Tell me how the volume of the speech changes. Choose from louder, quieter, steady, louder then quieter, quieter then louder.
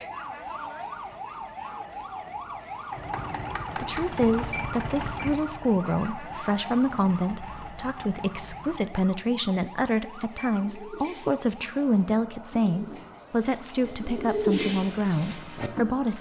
steady.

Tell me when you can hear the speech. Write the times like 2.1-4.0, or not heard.
3.8-16.1.